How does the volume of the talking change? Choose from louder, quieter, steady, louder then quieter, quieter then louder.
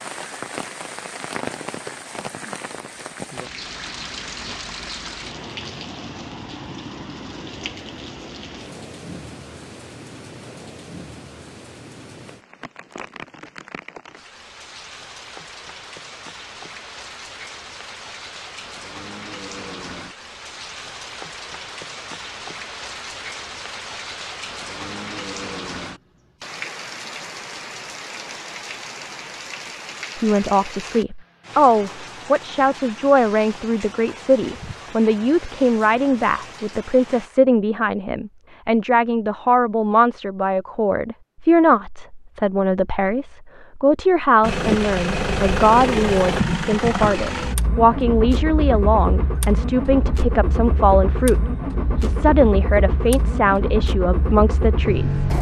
steady.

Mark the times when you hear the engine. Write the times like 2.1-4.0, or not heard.
44.4-55.3.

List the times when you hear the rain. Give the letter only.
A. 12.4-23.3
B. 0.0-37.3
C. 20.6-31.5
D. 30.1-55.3
B.